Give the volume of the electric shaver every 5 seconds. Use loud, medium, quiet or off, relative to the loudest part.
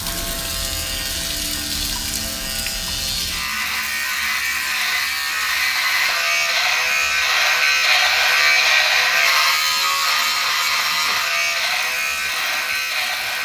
medium, loud, loud.